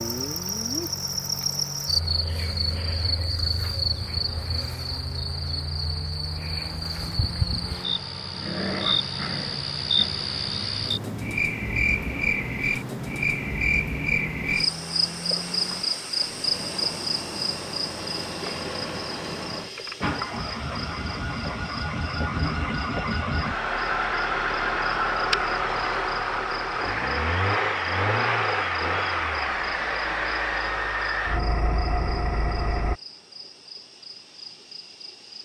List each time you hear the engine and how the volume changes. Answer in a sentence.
You can hear the engine from 0.0 to 33.0 s, getting louder.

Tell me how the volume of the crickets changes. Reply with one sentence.
The loudness of the crickets goes down.